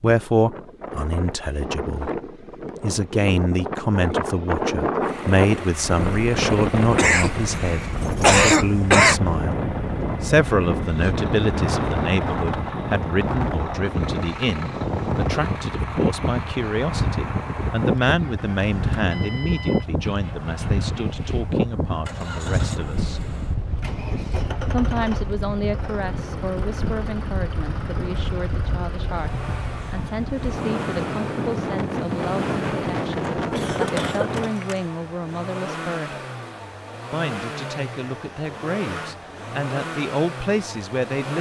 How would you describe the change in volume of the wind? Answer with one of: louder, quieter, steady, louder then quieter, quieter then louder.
steady.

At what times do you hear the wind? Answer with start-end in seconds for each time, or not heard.
0.0-34.5.